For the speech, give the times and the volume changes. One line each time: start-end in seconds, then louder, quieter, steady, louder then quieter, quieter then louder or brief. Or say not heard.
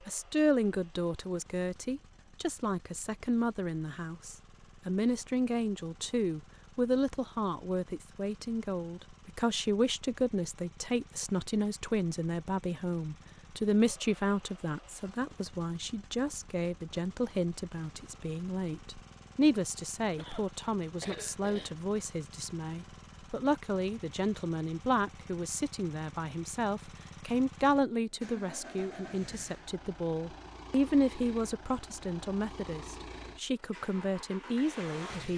0.1-35.3 steady.